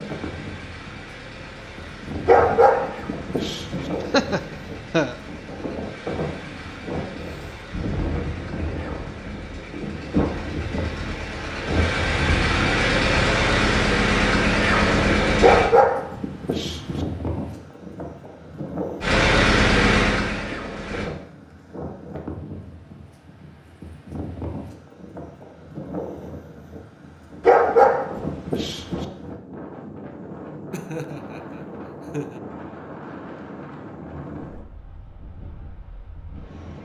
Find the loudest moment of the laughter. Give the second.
4 s.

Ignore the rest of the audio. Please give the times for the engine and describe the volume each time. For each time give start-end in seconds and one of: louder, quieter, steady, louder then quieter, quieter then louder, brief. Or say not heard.
0.0-15.7 louder
19.0-21.1 brief.